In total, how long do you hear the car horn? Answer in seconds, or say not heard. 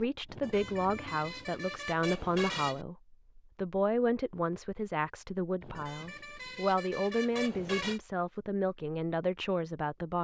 5 s.